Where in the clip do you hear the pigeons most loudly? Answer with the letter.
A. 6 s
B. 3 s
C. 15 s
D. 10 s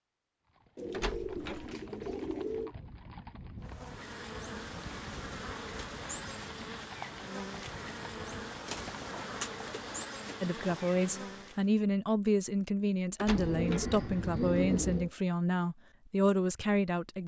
C.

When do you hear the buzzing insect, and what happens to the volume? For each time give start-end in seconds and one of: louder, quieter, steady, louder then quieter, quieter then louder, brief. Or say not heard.
3.6-11.7 steady.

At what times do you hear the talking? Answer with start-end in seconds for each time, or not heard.
10.4-17.2.